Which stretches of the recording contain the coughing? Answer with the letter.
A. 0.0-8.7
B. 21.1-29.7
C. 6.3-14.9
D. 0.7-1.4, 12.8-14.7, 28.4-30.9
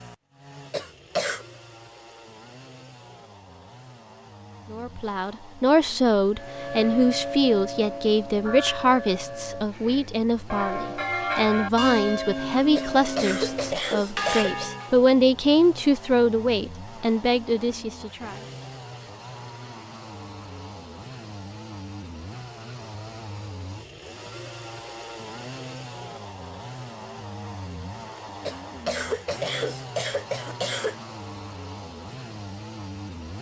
D.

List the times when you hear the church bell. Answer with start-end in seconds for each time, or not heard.
6.3-14.9.